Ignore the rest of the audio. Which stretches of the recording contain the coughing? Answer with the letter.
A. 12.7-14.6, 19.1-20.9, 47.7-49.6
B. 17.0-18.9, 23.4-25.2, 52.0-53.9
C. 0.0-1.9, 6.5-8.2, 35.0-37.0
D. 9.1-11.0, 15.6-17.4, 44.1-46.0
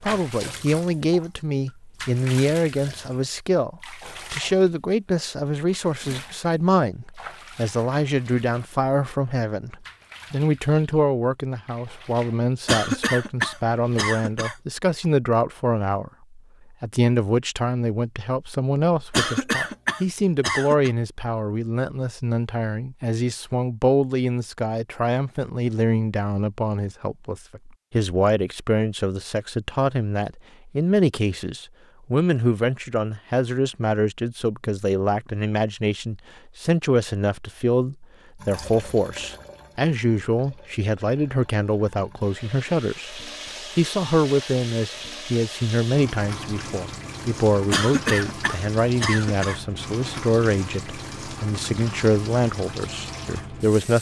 A.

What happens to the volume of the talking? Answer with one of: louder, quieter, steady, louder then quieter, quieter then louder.
steady.